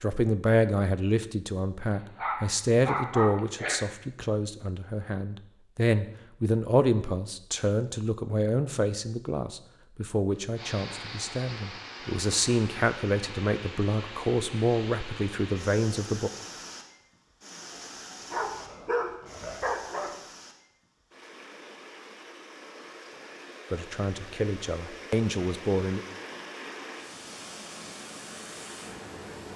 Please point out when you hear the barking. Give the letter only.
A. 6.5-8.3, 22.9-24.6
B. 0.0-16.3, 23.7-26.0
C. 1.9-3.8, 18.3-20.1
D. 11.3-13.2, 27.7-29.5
C.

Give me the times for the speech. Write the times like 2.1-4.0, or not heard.
0.0-16.3, 23.7-26.0.